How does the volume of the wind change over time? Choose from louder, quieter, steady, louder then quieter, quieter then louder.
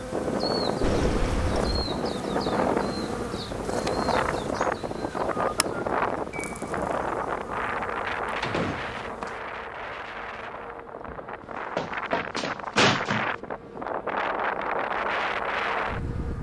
quieter then louder.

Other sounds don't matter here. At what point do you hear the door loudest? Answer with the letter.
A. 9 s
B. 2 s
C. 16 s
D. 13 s
D.